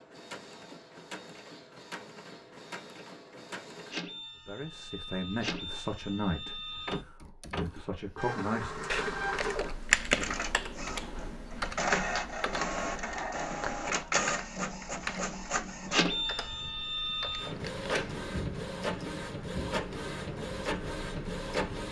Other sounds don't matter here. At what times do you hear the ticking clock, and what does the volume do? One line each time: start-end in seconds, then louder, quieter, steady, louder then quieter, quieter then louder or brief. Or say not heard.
not heard.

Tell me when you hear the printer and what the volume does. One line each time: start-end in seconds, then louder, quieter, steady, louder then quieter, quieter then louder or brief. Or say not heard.
0.0-21.8 louder.